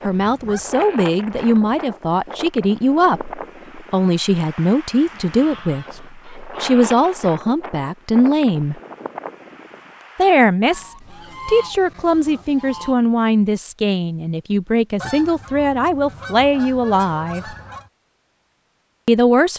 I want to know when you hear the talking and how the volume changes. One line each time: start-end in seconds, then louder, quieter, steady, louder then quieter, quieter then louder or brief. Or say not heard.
0.1-8.8 steady
10.2-17.6 steady
19.1-19.5 brief.